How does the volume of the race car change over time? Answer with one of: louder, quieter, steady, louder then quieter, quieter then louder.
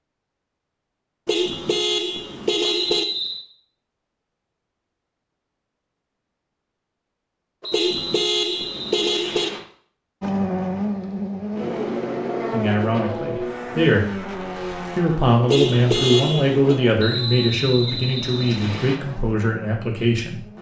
quieter.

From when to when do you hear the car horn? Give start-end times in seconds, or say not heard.
1.2-3.0, 7.7-9.5, 15.4-16.8.